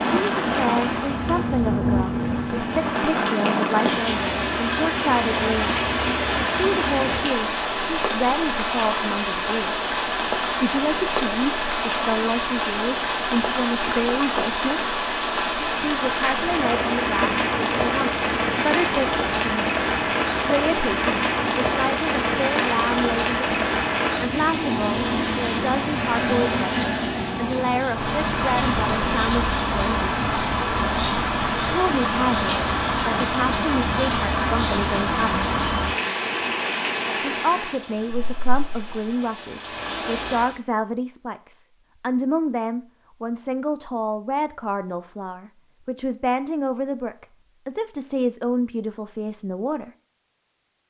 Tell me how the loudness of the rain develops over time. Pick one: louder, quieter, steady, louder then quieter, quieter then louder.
steady.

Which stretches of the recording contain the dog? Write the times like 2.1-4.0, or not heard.
not heard.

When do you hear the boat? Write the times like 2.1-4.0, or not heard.
0.2-3.0.